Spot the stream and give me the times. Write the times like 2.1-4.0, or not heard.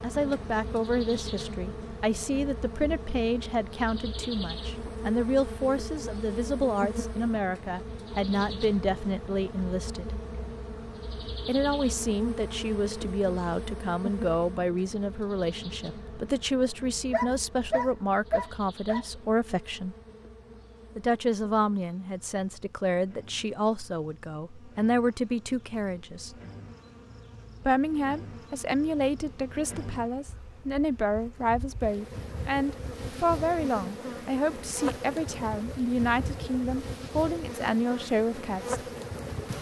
not heard.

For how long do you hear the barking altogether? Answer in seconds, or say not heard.
2 s.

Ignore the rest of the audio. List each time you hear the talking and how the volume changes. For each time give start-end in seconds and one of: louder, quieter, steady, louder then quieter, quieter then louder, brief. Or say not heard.
0.0-10.2 steady
11.4-19.9 steady
20.9-26.4 steady
27.6-38.8 steady.